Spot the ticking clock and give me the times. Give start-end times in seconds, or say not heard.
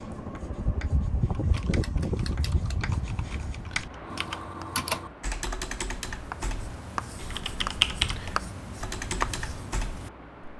not heard.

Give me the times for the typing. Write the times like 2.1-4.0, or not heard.
1.3-10.1.